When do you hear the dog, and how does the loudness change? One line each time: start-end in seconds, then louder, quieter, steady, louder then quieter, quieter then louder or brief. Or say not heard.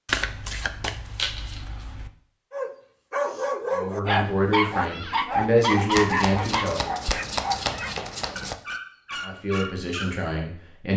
2.5-10.2 quieter.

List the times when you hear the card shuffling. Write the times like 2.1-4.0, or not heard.
0.1-2.1, 5.9-8.6.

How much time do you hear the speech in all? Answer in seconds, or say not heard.
5 s.